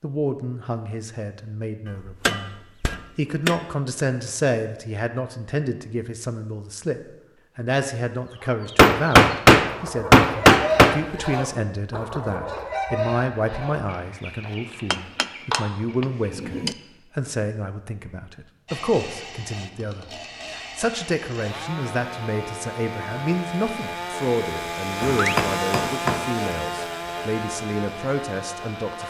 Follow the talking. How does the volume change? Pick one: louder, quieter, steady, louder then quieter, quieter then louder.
steady.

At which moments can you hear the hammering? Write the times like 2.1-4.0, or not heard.
2.2-3.5, 8.8-10.9, 14.9-16.8, 25.0-26.2.